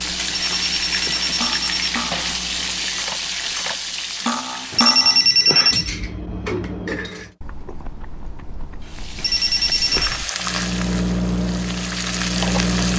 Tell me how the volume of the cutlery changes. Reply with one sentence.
The volume of the cutlery goes up, then down.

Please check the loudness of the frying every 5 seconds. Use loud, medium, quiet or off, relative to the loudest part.
loud, medium, loud.